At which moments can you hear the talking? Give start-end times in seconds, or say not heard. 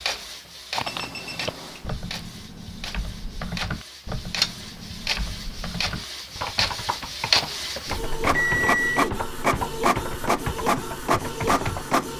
not heard.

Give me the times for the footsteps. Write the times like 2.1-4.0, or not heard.
not heard.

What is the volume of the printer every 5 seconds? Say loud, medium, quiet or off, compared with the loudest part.
medium, loud, loud.